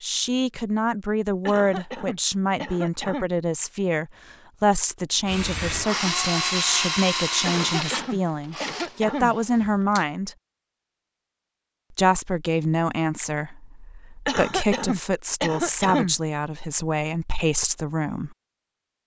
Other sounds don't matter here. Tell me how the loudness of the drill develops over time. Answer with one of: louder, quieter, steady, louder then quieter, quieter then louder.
quieter.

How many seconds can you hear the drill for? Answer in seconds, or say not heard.
5 s.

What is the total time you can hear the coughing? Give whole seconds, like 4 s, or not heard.
6 s.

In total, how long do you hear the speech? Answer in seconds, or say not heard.
17 s.